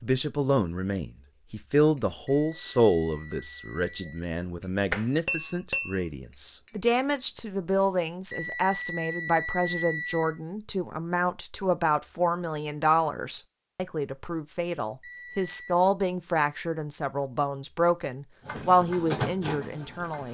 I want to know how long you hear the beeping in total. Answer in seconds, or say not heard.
5 s.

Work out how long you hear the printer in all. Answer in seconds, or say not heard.
2 s.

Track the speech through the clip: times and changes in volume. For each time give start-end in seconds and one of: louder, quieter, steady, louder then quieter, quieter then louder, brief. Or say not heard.
0.0-20.3 steady.